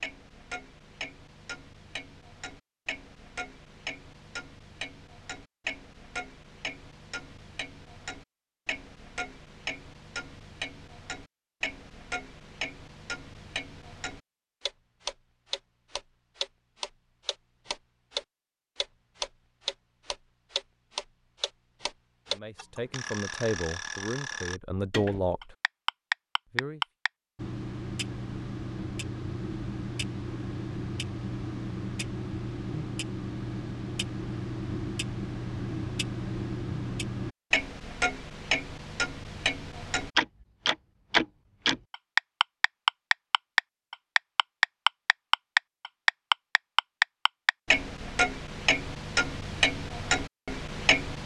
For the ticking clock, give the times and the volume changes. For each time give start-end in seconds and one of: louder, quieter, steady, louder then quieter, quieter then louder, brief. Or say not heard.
0.0-51.2 louder.